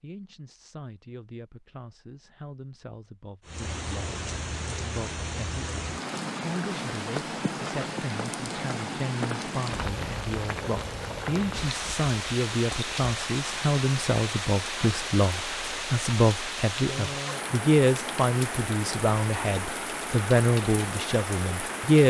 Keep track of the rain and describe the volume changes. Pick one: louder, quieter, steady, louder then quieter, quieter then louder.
steady.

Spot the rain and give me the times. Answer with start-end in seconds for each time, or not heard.
3.5-22.0.